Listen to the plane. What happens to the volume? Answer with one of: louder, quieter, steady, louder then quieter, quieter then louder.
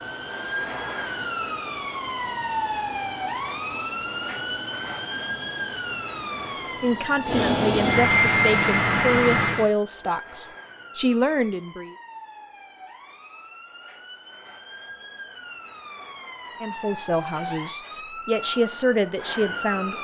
louder.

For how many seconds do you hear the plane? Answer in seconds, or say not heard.
10 s.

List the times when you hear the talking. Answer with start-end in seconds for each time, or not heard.
6.8-11.9, 16.6-19.9.